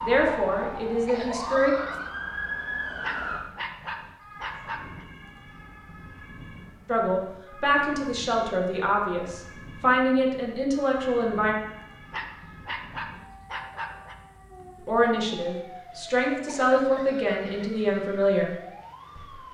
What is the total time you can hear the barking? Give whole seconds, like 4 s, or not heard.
4 s.